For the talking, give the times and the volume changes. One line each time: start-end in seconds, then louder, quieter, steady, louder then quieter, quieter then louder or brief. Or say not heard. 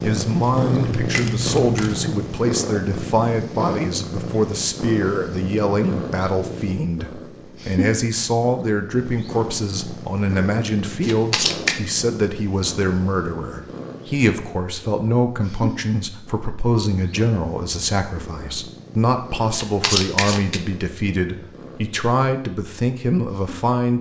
0.0-23.9 steady.